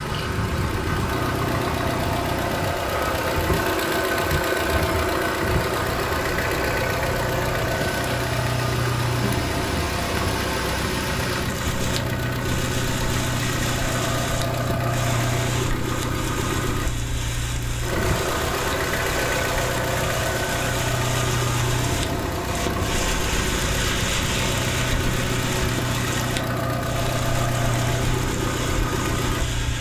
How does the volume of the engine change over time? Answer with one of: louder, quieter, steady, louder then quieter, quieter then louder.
steady.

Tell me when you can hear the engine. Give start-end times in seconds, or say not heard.
0.0-29.7.